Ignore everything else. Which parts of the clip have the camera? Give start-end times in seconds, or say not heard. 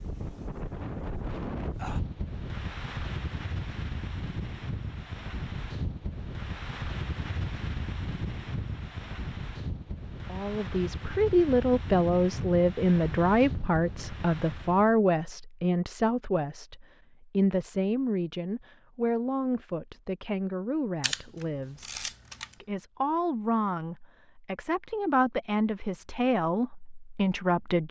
21.0-22.6.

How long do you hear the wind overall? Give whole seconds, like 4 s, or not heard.
15 s.